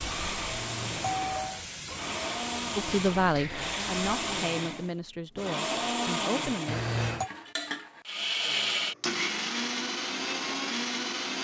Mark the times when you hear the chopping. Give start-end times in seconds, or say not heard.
not heard.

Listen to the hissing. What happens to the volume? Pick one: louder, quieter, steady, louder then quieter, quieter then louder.
steady.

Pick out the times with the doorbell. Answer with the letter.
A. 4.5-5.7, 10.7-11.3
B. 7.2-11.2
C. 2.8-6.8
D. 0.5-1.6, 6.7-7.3
D.